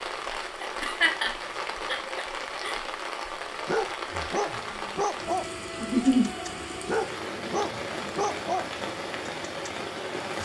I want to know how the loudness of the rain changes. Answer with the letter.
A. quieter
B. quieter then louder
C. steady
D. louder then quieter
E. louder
C.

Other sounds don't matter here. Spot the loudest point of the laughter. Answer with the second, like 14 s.
6 s.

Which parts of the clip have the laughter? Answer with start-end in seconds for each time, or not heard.
0.6-2.8, 5.8-6.2.